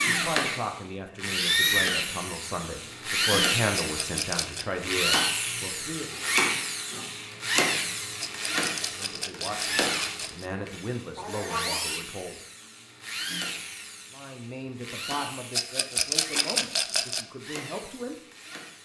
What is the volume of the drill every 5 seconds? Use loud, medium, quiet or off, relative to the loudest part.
loud, loud, medium, quiet.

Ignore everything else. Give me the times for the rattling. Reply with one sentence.
You can hear the rattling from 3.8 to 4.7 s, from 8.2 to 10.5 s and from 15.5 to 17.2 s.